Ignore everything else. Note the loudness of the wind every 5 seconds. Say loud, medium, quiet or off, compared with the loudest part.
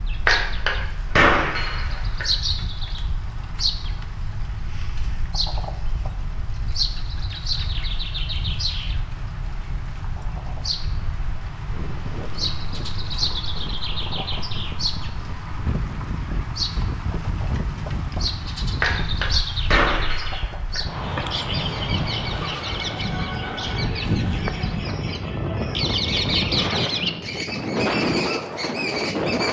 quiet, quiet, quiet, medium, loud, loud.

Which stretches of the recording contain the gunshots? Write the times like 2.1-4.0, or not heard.
0.2-2.2, 18.8-20.8.